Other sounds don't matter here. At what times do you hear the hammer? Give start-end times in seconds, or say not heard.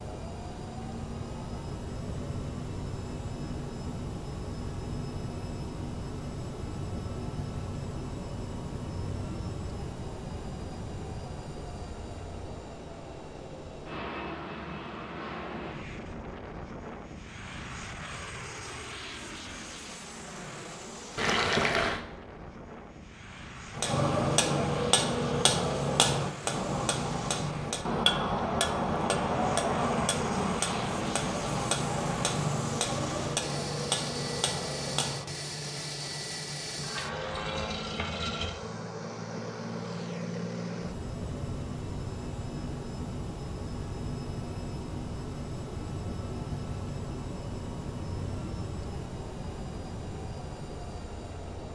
23.8-35.3.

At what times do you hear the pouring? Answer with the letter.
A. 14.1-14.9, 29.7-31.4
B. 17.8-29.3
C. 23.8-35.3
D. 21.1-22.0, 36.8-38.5
D.